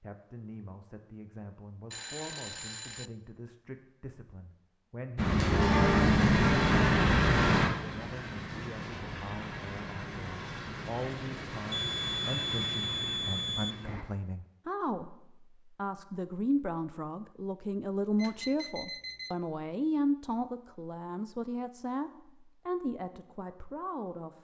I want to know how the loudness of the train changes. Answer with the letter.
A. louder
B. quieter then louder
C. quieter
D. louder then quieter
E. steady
C.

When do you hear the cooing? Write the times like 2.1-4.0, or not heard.
not heard.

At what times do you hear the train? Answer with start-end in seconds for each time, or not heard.
5.2-14.1.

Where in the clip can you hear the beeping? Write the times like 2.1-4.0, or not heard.
1.9-3.1, 11.7-13.8, 18.1-19.4.